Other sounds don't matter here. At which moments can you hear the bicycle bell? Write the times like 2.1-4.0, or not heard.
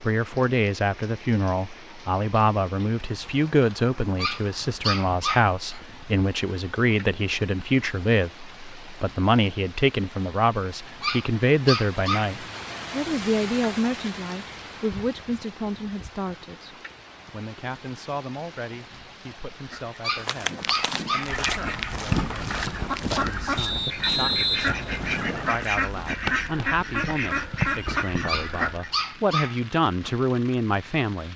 not heard.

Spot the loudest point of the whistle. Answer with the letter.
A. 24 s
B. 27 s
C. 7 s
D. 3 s
A.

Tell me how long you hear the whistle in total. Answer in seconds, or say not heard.
2 s.